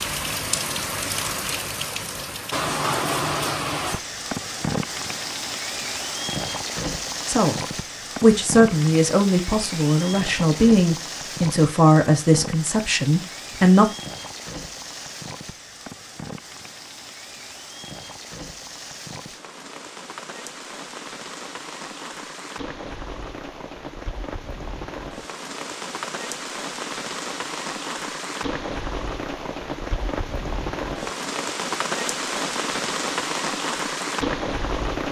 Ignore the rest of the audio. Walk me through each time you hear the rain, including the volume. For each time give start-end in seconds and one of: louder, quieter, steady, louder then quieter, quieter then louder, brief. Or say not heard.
0.0-35.0 quieter then louder.